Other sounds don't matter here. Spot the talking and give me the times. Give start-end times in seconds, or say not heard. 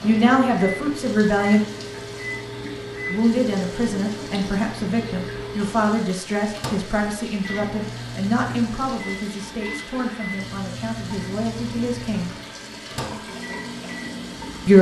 0.0-1.6, 3.0-12.3.